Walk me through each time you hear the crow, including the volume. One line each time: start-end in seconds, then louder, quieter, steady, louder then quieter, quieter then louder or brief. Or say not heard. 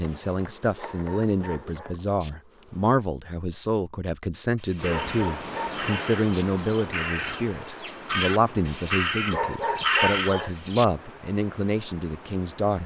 4.5-10.8 louder.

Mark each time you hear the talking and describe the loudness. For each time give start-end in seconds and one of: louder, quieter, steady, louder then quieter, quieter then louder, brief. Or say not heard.
0.0-12.8 steady.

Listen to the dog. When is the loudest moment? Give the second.
10 s.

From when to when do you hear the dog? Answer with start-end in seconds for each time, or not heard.
0.8-2.3, 4.8-6.5, 9.3-10.8.